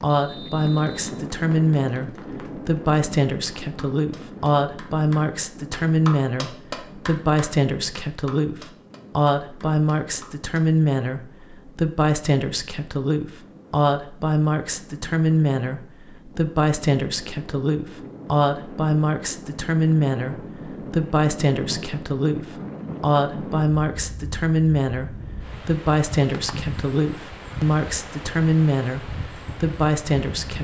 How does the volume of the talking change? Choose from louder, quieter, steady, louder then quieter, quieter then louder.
steady.